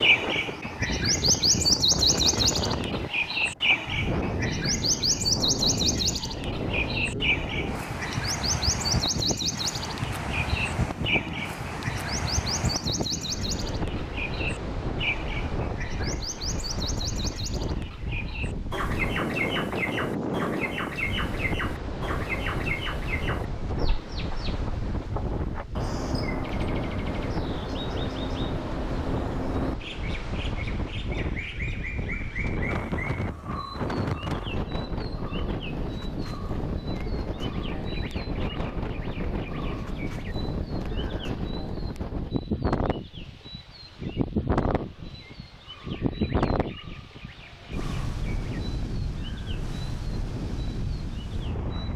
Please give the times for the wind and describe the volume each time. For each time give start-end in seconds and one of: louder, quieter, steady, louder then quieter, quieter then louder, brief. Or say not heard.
0.0-51.9 steady.